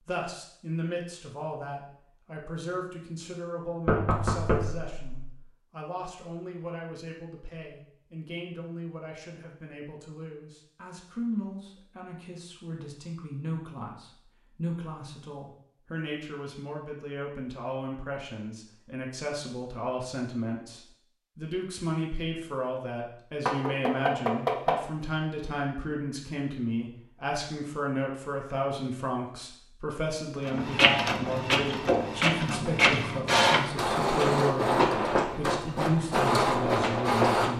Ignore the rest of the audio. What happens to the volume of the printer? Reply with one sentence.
The loudness of the printer stays about the same.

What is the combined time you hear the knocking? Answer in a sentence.
The knocking can be heard for 3 seconds in total.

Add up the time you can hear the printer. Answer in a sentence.
The printer can be heard for 7 seconds in total.